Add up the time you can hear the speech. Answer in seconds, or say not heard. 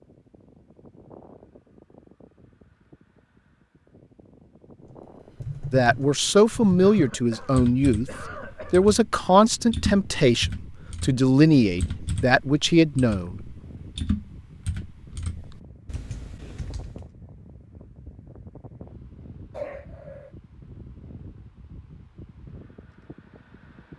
7 s.